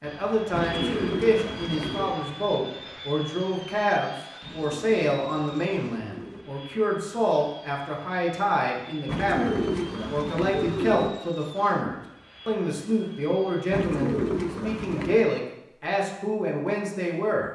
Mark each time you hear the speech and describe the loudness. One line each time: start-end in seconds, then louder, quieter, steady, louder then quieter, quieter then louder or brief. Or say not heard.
0.0-17.5 steady.